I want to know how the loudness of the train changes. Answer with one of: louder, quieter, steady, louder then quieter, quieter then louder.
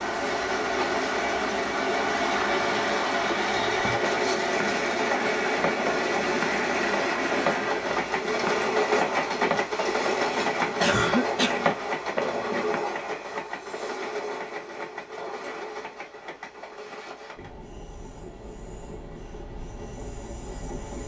quieter.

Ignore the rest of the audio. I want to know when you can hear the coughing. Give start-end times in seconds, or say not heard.
10.8-11.7.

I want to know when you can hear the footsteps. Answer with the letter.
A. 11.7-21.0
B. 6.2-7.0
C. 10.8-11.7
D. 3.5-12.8
D.